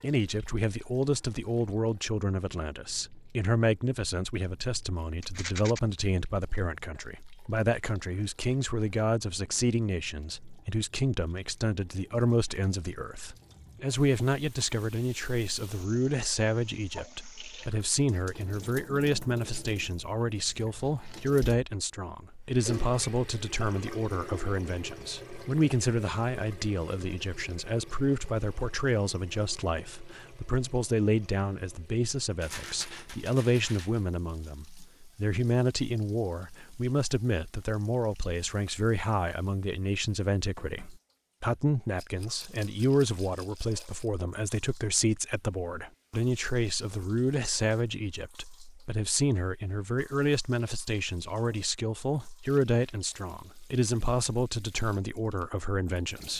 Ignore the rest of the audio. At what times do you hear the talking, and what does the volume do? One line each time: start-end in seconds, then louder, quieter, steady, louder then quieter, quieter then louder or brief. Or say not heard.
0.0-56.3 steady.